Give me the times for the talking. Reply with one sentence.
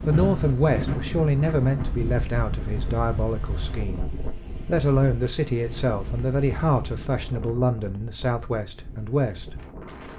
The talking can be heard from 0.1 to 9.6 s.